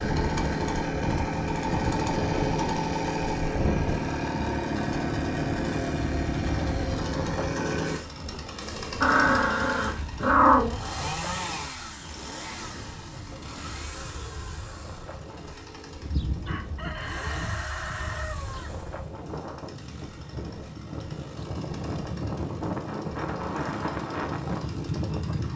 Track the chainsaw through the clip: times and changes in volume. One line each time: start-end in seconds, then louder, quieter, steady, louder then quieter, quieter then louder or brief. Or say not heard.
0.0-25.5 quieter.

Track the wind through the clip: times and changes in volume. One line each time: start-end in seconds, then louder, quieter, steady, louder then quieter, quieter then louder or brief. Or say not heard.
0.0-25.5 quieter then louder.